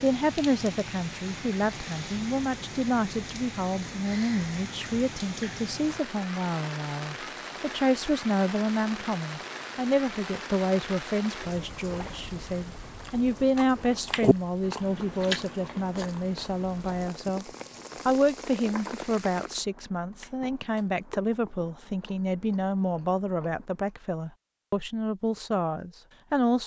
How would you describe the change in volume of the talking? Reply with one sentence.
The volume of the talking stays about the same.